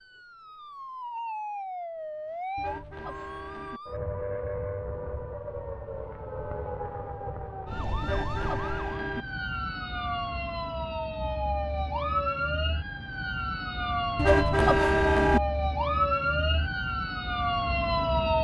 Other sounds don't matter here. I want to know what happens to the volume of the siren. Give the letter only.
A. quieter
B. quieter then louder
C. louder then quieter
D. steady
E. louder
E.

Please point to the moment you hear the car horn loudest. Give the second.
15 s.